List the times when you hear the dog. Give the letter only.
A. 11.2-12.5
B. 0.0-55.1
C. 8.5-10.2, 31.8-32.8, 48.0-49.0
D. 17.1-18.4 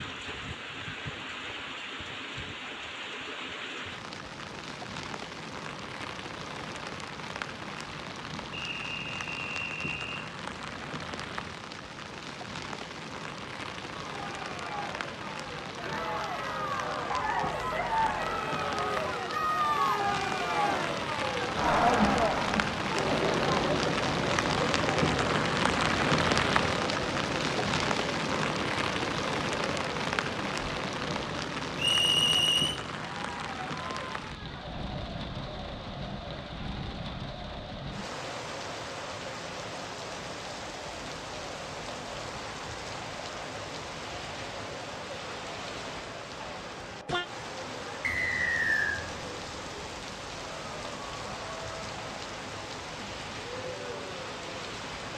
D.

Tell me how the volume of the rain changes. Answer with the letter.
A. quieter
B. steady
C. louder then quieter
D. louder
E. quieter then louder
C.